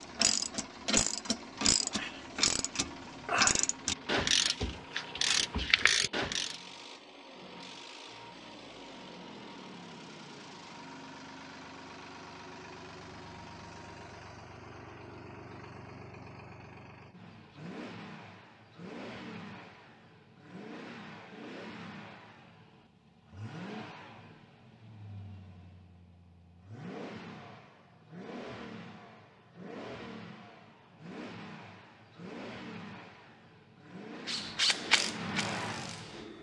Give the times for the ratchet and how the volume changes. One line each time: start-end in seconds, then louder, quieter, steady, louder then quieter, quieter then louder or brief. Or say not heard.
0.0-6.5 steady
34.2-36.3 brief.